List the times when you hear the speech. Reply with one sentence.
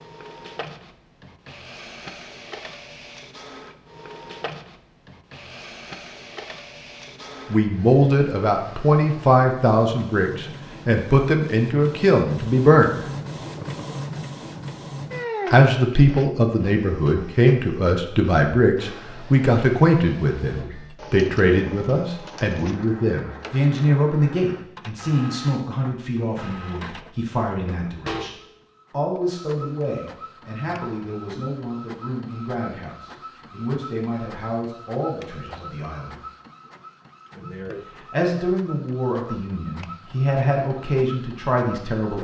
You can hear the speech from 7.5 to 13.1 s, from 15.5 to 28.3 s, from 28.9 to 36.1 s and from 38.1 to 42.2 s.